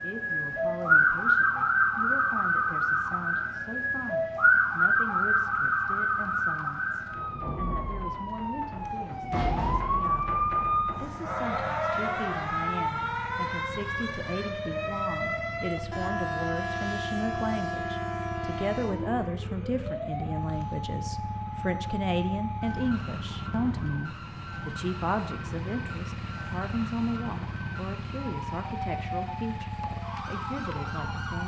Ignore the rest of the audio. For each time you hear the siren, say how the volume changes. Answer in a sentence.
The siren can be heard from 0.0 to 31.4 s, getting quieter.